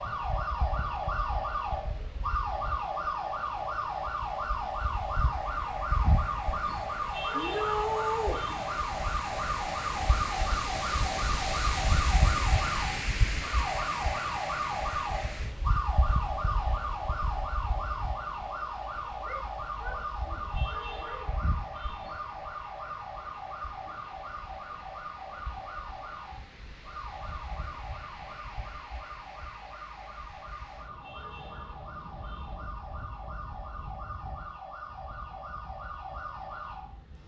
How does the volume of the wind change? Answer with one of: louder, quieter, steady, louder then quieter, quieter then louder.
louder then quieter.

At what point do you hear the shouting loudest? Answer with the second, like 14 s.
8 s.